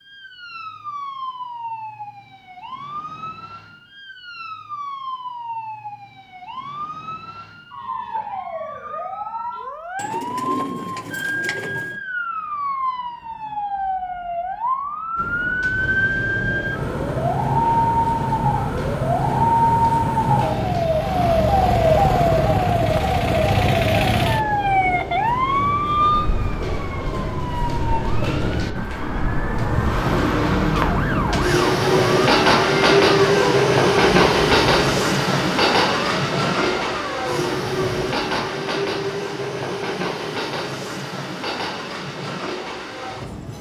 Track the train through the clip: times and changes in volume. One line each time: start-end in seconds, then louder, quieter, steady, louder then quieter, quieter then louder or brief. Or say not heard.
15.2-43.5 louder then quieter.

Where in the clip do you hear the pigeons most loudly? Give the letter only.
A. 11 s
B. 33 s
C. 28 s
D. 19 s
A.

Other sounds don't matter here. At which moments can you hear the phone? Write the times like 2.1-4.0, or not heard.
not heard.